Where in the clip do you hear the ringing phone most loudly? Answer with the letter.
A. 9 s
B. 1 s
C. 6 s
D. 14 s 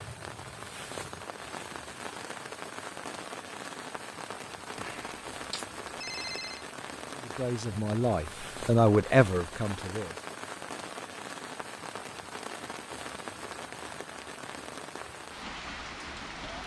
C.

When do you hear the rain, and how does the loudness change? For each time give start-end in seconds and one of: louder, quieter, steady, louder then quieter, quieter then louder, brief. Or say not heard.
0.0-16.6 steady.